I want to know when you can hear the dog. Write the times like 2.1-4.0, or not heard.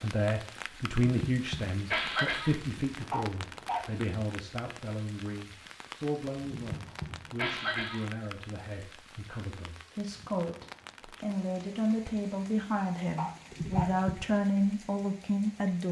3.1-4.0, 13.2-14.0.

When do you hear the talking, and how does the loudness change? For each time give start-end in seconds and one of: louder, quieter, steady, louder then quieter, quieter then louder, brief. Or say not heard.
0.0-15.8 quieter then louder.